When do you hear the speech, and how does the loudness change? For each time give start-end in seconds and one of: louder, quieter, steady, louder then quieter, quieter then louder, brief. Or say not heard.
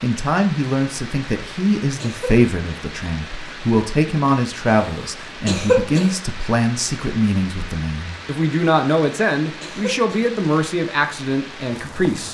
0.0-12.2 steady.